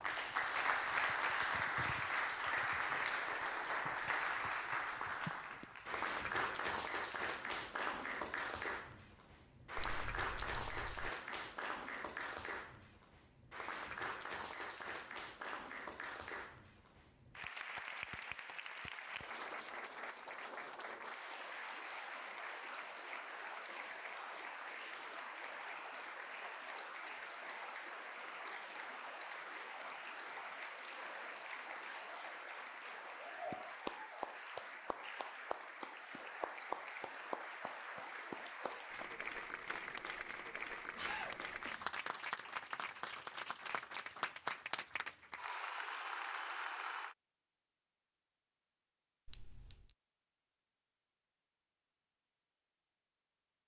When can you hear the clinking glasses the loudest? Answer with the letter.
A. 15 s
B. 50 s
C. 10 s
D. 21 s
C.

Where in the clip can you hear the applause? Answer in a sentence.
You can hear the applause from 0.0 to 47.1 s.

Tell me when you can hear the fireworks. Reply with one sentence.
The fireworks can't be heard in this clip.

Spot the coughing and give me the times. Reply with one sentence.
You can hear the coughing from 41.0 to 41.9 s.